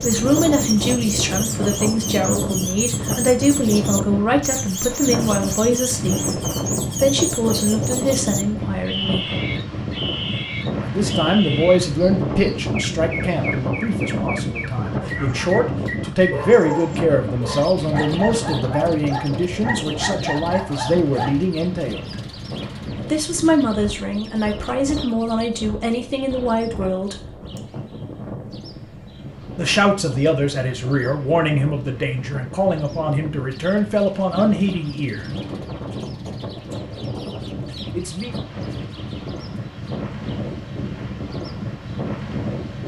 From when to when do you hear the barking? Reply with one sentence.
The barking can be heard from 15.0 to 15.6 s and from 16.3 to 21.3 s.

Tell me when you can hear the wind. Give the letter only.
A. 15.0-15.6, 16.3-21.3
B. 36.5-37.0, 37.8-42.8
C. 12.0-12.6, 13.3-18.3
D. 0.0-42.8
D.